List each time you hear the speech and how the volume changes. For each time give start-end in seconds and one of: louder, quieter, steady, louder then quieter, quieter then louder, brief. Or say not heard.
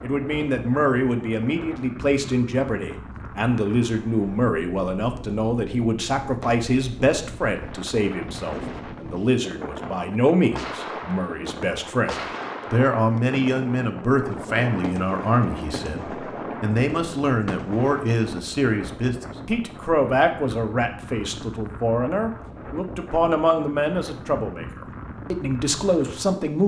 0.0-26.6 steady.